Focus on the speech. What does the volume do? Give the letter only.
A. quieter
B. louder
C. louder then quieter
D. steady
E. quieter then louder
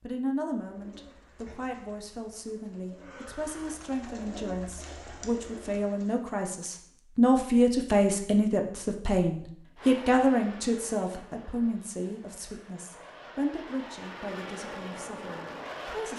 C.